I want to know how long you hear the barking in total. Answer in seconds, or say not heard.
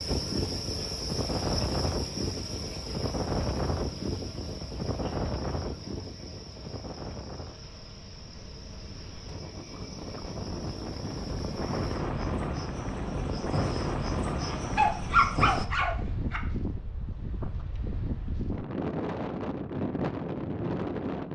2 s.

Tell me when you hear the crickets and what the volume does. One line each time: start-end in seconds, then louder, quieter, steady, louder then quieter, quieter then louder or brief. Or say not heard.
0.0-15.7 quieter then louder.